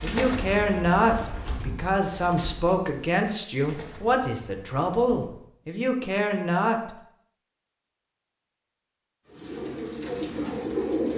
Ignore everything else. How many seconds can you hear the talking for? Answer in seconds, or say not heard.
7 s.